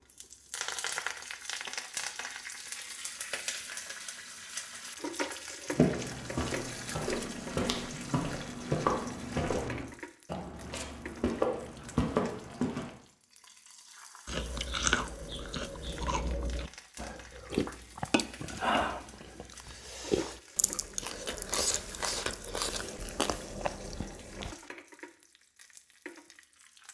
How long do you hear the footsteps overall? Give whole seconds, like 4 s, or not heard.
7 s.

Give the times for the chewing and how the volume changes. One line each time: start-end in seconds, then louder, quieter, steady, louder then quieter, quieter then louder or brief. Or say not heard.
14.2-24.6 steady.